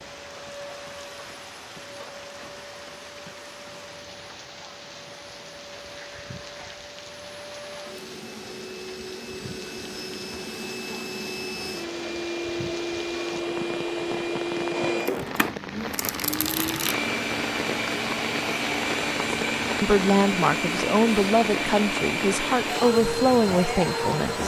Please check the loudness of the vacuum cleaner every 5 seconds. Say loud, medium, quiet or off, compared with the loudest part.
quiet, quiet, loud, loud, loud.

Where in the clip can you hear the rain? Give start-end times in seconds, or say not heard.
0.0-24.4.